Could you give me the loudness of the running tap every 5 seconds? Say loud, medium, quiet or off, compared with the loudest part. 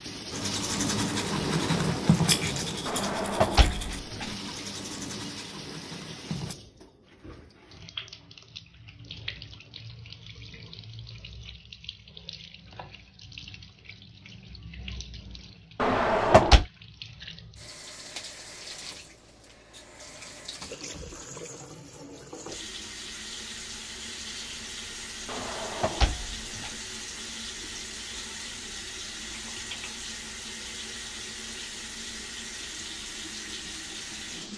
loud, medium, medium, medium, loud, loud, loud.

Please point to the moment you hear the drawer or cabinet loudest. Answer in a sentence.
The loudest moment of the drawer or cabinet is at 16 seconds.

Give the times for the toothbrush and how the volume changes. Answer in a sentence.
You can hear the toothbrush from 0.3 to 6.5 s, getting quieter.